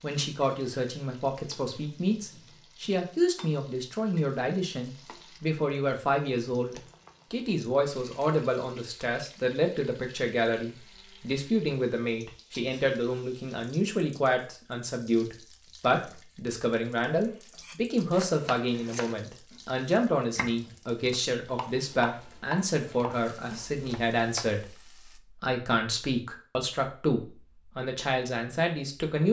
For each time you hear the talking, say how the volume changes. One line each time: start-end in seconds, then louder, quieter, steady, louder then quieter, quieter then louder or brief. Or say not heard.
0.0-29.2 steady.